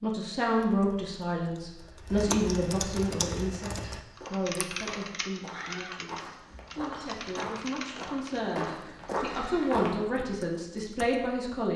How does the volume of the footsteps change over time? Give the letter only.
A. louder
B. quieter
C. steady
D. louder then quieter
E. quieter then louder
A.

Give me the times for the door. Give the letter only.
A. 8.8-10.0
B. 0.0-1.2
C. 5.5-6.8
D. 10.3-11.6
C.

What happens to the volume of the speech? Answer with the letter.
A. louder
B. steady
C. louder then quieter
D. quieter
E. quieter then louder
E.